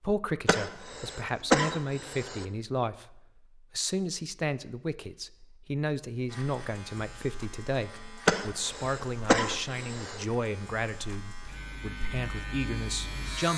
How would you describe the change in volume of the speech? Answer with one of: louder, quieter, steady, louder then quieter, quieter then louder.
steady.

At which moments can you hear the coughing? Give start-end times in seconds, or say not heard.
0.5-2.5, 8.2-10.2.